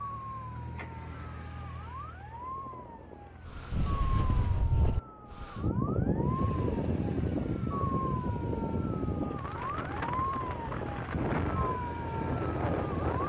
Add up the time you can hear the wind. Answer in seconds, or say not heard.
10 s.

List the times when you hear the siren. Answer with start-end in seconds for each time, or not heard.
0.0-13.2.